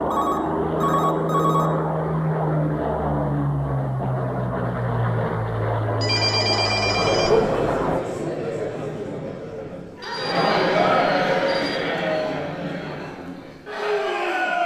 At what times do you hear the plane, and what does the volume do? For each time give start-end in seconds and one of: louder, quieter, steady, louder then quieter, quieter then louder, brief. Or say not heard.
0.0-8.0 steady.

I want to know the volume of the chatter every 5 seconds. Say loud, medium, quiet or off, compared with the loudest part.
off, loud, loud.